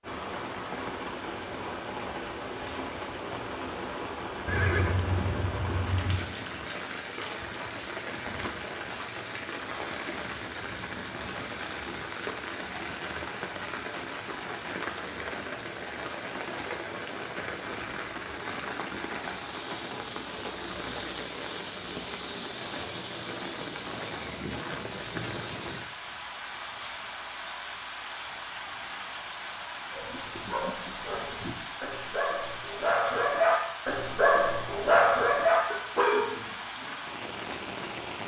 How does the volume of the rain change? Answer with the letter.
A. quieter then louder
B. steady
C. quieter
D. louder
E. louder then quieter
B.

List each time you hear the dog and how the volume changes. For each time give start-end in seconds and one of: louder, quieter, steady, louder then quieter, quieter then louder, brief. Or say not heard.
29.9-37.0 louder.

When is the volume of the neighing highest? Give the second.
5 s.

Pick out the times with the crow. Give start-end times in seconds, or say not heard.
not heard.